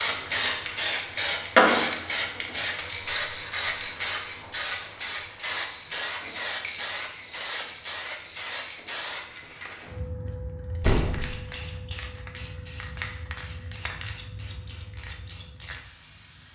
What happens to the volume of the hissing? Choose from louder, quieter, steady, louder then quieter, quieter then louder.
quieter.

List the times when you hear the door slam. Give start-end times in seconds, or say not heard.
10.8-11.3.